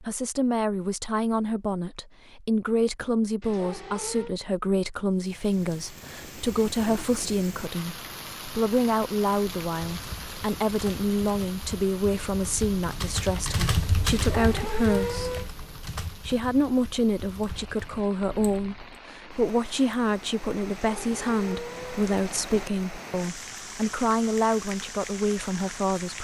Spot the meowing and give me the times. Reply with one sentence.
The meowing can be heard from 3.4 to 4.3 s, from 14.1 to 15.5 s and from 20.7 to 22.6 s.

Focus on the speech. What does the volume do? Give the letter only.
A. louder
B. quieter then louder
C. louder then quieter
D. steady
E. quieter
D.